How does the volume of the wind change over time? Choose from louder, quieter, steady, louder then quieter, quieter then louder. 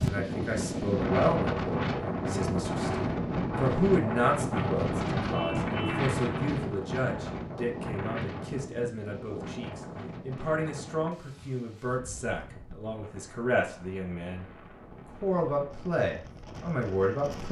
quieter.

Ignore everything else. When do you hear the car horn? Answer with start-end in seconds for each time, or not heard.
5.3-6.1.